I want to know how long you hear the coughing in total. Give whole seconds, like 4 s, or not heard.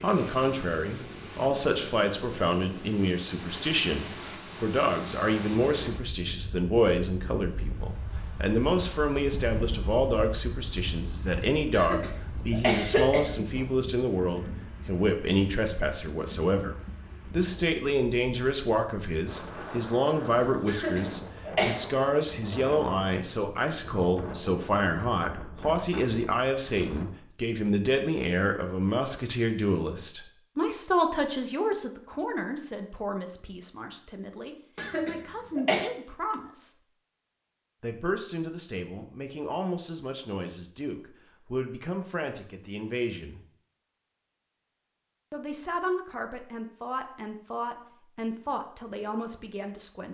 4 s.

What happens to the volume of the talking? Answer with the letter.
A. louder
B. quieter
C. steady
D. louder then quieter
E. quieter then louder
B.